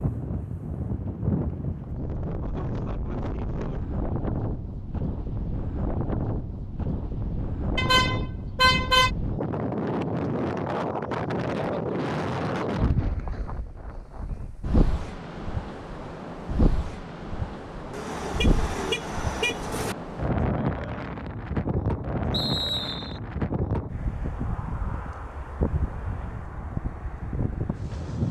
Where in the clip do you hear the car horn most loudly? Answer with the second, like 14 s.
9 s.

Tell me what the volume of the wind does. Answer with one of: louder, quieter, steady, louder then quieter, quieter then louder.
steady.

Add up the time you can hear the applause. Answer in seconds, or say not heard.
not heard.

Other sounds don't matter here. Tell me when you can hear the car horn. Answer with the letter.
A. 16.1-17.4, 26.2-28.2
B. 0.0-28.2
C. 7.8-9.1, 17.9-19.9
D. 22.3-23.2
C.